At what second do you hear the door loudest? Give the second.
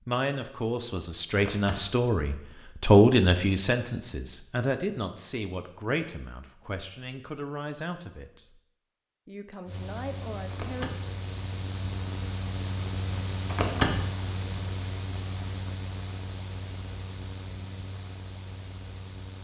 14 s.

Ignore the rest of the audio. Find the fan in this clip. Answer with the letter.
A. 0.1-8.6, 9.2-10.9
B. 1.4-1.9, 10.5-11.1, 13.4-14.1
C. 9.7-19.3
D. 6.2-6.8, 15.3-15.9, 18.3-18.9
C.